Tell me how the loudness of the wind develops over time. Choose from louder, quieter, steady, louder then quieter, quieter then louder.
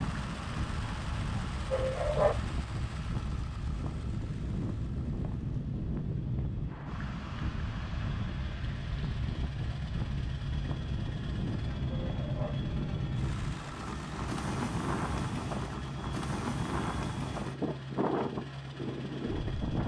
steady.